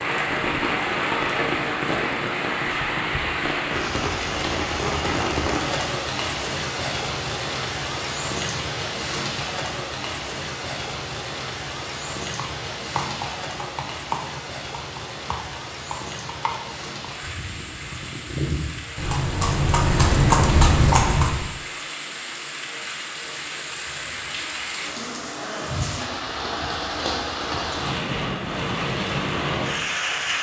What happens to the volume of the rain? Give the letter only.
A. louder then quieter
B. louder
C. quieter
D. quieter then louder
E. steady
D.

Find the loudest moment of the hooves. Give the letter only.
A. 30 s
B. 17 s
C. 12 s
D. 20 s
D.